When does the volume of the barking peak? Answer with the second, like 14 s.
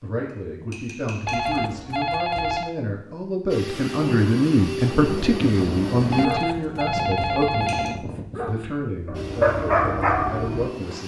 10 s.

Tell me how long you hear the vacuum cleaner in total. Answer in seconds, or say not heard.
5 s.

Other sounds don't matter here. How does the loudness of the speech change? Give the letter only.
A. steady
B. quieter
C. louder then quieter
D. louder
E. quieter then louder
C.